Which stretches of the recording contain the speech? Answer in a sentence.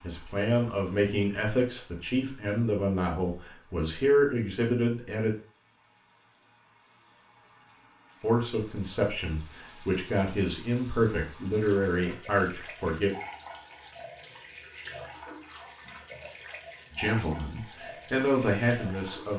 The speech can be heard from 0.0 to 5.3 s, from 8.2 to 13.2 s and from 16.9 to 19.3 s.